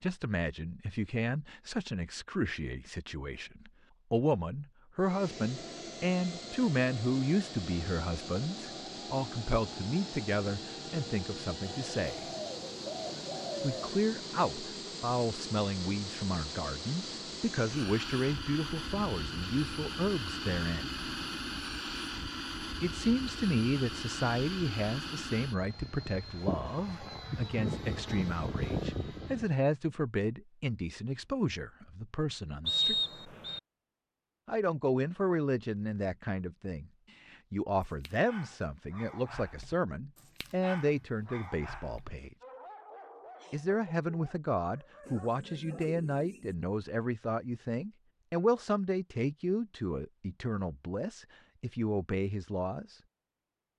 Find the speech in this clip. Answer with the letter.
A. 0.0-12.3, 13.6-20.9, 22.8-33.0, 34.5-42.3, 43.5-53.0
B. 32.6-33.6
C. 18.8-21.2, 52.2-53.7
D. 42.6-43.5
A.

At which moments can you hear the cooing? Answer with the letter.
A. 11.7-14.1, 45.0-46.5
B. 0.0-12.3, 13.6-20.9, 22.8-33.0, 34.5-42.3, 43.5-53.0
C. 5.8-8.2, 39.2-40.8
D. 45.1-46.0
A.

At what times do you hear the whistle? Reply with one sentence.
The whistle can be heard from 32.6 to 33.6 s.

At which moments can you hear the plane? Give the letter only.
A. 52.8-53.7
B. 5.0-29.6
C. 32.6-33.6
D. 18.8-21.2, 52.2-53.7
B.